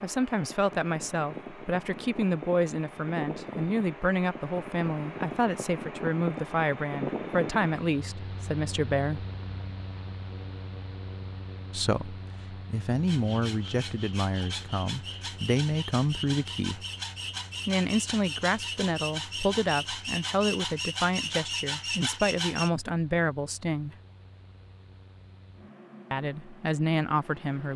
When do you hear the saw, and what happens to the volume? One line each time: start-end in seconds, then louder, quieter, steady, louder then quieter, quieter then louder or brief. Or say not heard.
13.1-22.7 louder.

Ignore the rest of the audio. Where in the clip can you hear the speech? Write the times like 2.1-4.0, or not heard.
0.0-9.2, 11.7-16.9, 17.6-23.9, 26.1-27.7.